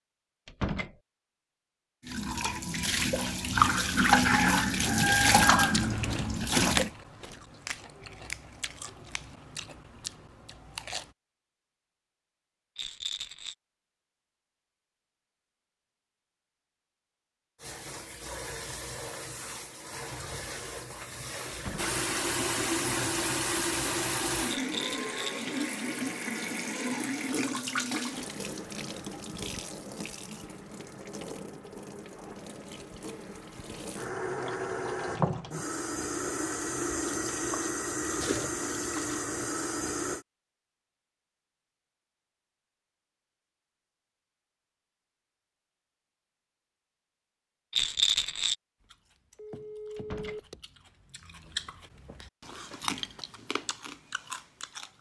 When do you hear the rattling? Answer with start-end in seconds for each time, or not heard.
12.8-13.6, 24.4-25.5, 47.7-48.5.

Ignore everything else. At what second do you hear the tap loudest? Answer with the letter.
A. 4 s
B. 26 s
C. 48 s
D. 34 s
A.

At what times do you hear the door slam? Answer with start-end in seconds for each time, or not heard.
0.5-0.9, 21.5-21.9, 50.0-50.4.